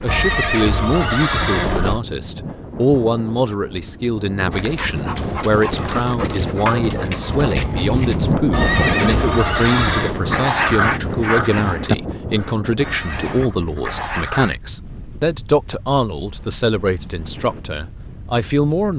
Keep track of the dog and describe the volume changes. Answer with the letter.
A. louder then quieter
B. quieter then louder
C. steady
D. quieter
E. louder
A.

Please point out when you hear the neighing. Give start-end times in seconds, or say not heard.
0.1-2.0, 8.5-10.2, 12.8-13.5.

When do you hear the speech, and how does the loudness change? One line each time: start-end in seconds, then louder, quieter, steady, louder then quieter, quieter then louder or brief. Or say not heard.
0.0-18.9 steady.